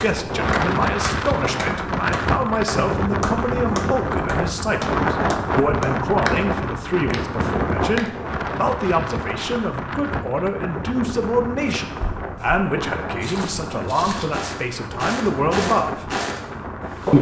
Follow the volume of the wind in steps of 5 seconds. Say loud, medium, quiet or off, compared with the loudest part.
loud, loud, medium, medium.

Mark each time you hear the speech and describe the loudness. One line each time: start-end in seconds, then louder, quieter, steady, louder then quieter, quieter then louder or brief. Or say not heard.
0.0-16.1 steady.